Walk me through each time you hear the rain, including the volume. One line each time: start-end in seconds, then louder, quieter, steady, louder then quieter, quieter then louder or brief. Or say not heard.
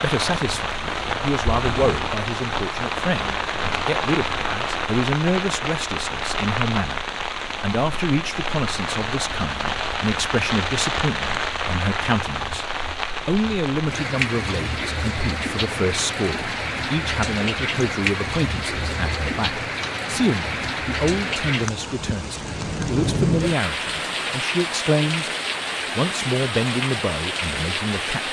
0.0-28.2 steady.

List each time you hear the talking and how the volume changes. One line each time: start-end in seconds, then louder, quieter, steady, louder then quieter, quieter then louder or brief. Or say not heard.
0.0-25.3 steady
25.9-28.2 brief.